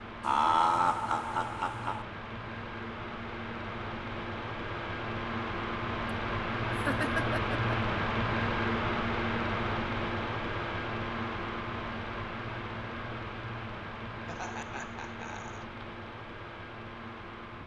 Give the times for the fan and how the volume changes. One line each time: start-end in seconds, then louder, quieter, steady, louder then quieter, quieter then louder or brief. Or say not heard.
0.0-17.6 louder then quieter.